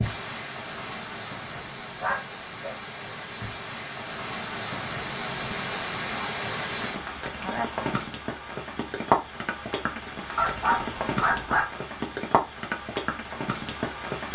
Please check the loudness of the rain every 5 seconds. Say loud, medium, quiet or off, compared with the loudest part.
medium, loud, loud.